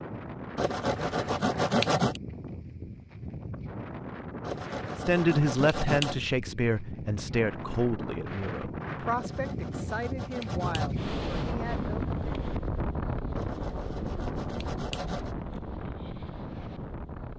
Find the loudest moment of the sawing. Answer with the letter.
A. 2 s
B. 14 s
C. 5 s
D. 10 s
A.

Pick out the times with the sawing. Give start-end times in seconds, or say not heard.
0.6-2.2, 4.5-6.2, 9.2-10.9, 13.3-15.3.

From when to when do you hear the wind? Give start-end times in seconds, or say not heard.
0.0-17.3.